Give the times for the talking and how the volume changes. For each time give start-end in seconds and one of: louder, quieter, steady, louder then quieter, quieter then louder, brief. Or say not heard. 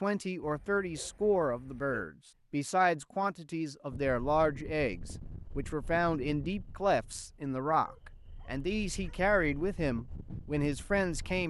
0.0-11.4 steady.